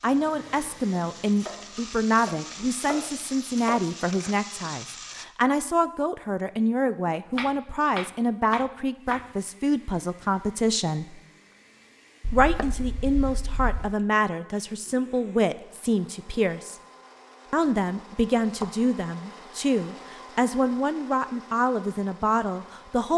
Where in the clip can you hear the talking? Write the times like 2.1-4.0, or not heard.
0.0-11.2, 12.3-16.8, 17.5-23.1.